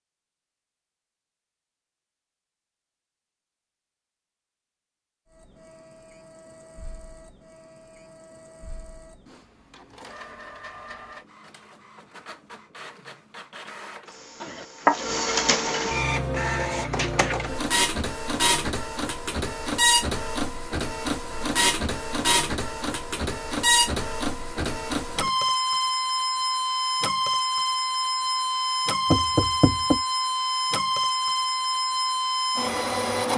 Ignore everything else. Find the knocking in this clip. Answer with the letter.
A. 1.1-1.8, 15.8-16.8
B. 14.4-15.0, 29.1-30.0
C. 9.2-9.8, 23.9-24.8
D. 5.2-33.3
B.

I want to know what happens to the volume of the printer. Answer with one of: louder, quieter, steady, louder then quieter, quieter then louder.
louder.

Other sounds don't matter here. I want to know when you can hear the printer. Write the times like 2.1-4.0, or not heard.
5.2-33.3.